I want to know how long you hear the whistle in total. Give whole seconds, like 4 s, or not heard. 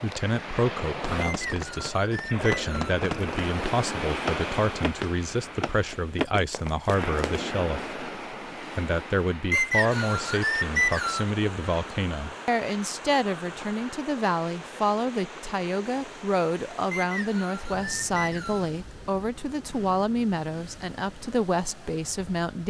5 s.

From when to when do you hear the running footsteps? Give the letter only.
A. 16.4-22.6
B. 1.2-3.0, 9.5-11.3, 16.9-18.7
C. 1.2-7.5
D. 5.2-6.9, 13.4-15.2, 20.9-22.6
C.